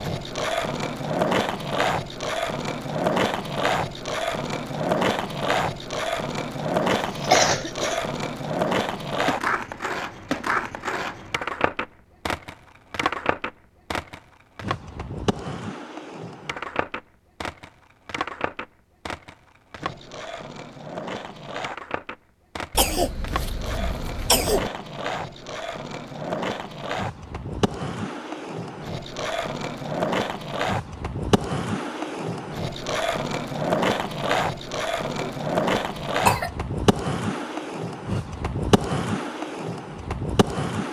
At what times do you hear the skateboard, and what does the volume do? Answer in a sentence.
The skateboard can be heard from 0.0 to 40.8 s, getting quieter then louder.